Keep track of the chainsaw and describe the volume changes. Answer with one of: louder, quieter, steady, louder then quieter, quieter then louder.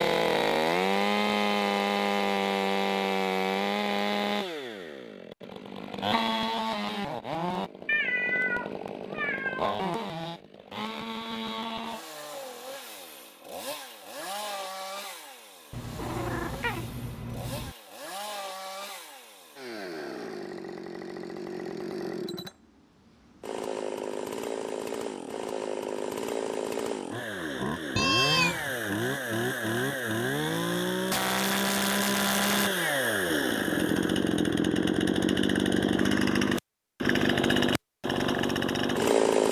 quieter then louder.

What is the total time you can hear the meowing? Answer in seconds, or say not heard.
5 s.